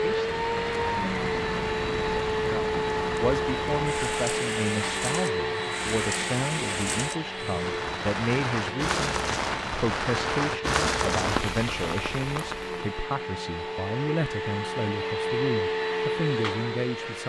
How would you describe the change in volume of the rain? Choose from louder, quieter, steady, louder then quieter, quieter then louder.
louder.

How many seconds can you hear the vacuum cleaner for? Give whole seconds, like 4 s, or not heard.
17 s.